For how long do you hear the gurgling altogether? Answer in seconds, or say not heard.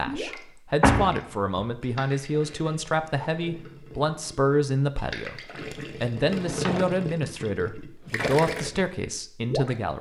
10 s.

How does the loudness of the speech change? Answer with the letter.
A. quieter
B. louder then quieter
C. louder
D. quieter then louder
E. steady
E.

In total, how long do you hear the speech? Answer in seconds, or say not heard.
10 s.